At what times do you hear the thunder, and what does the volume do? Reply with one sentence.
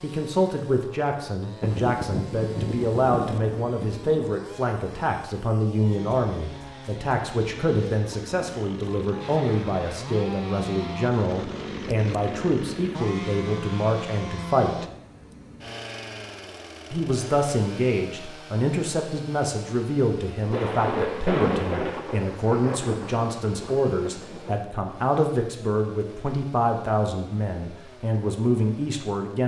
You can hear the thunder briefly from 1.6 to 4.2 s; and from 20.4 to 24.6 s, getting quieter.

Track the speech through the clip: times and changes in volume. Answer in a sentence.
You can hear the speech from 0.0 to 14.8 s, at a steady volume; and from 16.9 to 29.4 s, at a steady volume.